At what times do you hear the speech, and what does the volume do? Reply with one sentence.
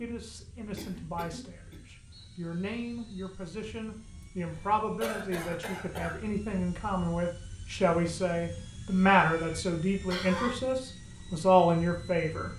You can hear the speech from 0.0 to 12.5 s, getting louder.